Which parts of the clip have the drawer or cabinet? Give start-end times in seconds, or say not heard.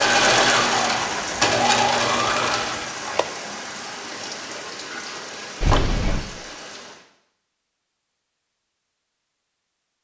not heard.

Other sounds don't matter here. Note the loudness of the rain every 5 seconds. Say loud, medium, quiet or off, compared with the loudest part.
loud, medium.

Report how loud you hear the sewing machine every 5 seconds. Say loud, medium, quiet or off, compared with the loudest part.
loud, off.